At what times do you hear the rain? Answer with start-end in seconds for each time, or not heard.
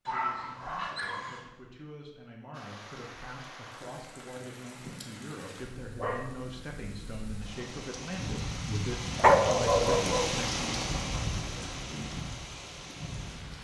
2.5-13.5.